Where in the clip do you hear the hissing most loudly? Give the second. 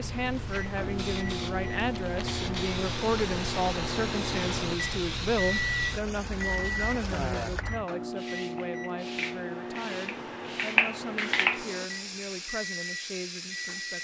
11 s.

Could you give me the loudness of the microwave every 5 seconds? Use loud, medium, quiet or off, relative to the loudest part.
loud, loud, medium.